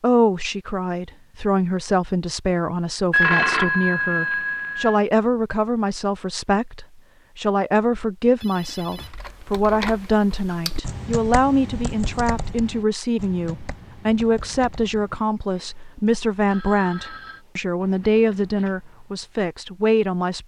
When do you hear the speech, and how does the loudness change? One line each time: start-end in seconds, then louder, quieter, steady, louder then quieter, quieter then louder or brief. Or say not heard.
0.0-20.4 steady.